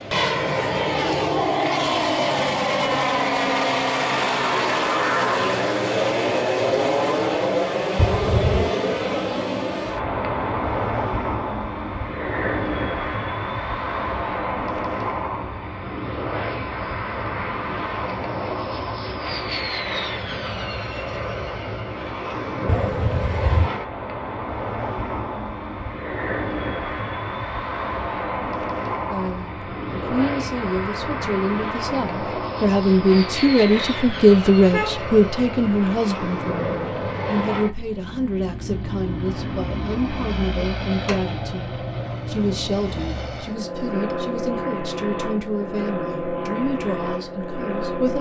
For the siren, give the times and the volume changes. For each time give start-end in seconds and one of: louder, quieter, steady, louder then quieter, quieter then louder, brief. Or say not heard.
not heard.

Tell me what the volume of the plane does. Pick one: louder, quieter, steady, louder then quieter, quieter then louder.
quieter.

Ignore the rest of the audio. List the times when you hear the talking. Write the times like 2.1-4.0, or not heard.
29.1-48.1.